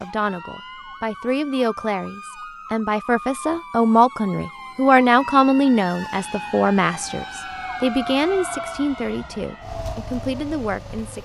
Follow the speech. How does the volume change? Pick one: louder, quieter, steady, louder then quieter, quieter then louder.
louder then quieter.